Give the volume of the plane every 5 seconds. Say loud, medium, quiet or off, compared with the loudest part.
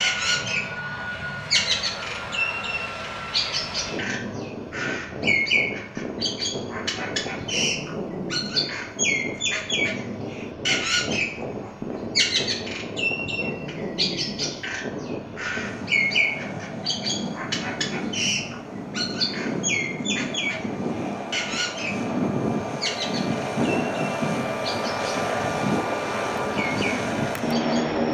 medium, medium, medium, medium, loud, loud.